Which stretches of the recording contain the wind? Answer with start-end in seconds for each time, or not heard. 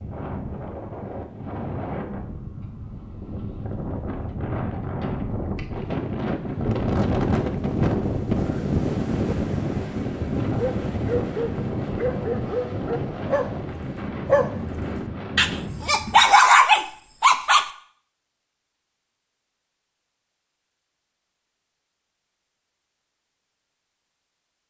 0.0-16.2.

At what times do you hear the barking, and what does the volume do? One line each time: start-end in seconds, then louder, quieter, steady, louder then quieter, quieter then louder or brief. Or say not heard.
10.6-17.7 louder.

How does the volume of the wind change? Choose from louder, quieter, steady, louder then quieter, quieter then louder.
louder then quieter.